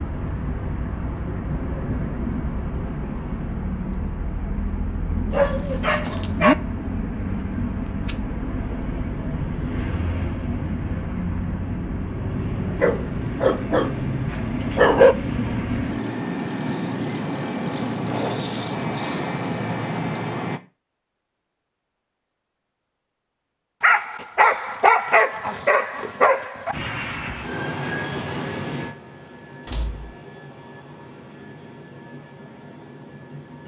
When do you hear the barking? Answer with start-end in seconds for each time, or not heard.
5.3-6.5, 12.8-15.2, 23.8-26.8.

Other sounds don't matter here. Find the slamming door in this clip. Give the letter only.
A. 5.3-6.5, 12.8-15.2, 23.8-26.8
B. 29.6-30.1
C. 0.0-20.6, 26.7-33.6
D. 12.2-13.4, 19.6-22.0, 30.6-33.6
B.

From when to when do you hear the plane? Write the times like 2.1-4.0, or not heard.
0.0-20.6, 26.7-33.6.